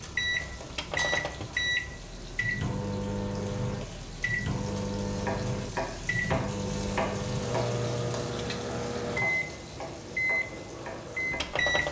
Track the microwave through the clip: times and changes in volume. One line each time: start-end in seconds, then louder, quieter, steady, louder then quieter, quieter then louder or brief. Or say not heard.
0.0-11.8 steady.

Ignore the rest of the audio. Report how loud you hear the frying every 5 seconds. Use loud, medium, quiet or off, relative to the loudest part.
medium, loud, medium.